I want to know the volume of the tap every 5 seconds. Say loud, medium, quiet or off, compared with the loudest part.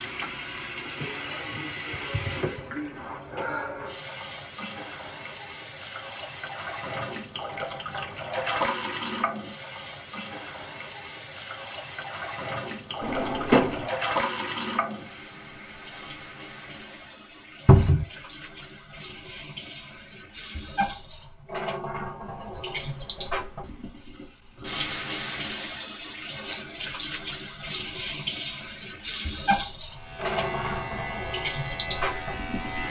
medium, medium, medium, quiet, loud, loud, loud.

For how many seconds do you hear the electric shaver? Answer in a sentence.
You can hear the electric shaver for 3 seconds altogether.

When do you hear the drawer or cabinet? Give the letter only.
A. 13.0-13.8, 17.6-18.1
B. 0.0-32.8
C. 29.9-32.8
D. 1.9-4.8
A.